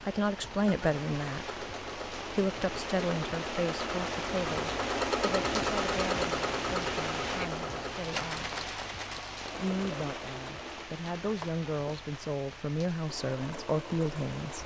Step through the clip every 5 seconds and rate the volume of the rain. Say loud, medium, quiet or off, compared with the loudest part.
loud, loud, medium.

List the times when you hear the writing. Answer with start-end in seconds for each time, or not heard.
not heard.